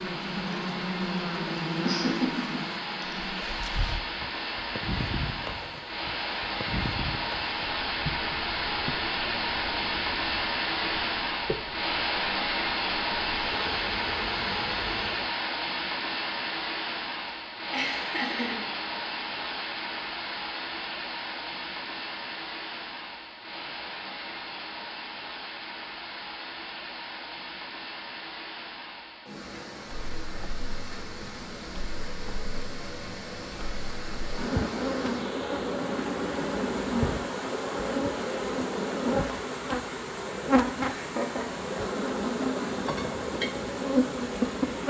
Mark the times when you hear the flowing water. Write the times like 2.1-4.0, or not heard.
0.0-44.8.